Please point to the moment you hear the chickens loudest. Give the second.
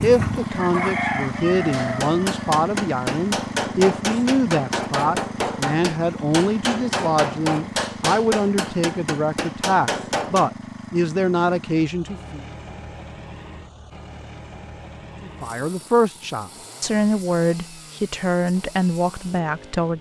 1 s.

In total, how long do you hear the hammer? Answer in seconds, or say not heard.
9 s.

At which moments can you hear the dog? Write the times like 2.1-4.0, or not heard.
not heard.